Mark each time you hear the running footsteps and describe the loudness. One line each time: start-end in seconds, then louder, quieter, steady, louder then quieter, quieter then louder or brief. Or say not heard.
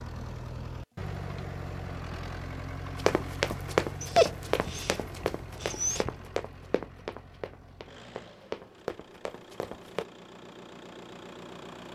3.0-10.1 quieter then louder.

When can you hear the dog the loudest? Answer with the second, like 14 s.
4 s.